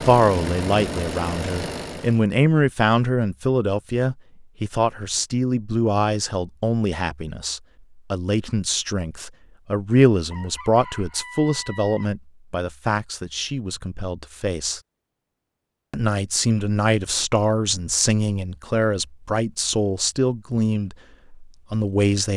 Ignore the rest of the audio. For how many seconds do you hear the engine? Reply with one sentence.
You can hear the engine for 2 seconds altogether.